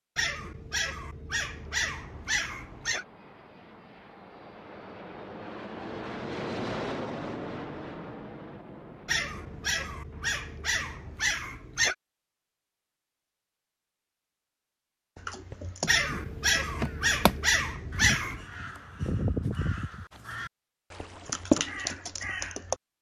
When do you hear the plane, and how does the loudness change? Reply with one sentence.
The plane can be heard from 1.5 to 11.3 s, getting louder then quieter.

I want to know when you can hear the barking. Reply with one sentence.
You can hear the barking from 0.1 to 3.0 s, from 9.1 to 11.9 s and from 15.8 to 18.4 s.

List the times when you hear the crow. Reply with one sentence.
The crow can be heard from 15.2 to 22.8 s.